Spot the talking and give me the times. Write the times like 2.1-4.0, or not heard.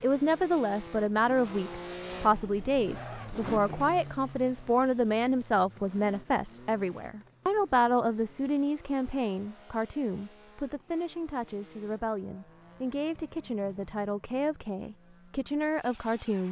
0.0-16.4.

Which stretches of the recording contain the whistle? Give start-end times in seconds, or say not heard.
not heard.